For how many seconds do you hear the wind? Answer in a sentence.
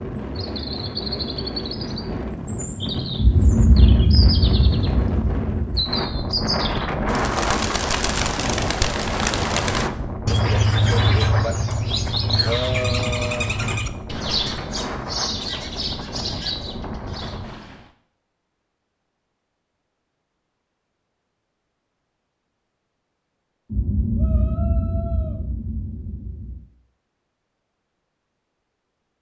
The wind can be heard for 18 seconds in total.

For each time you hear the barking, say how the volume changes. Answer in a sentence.
You can't hear the barking here.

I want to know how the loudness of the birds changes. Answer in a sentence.
The loudness of the birds goes up, then down.